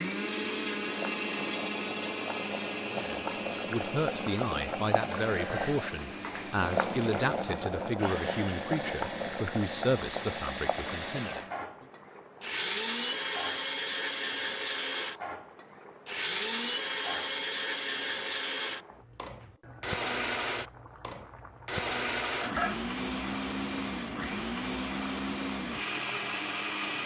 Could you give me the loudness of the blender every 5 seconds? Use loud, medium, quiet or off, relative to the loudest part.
loud, medium, loud, loud, loud, loud.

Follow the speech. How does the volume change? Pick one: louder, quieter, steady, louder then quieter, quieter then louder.
steady.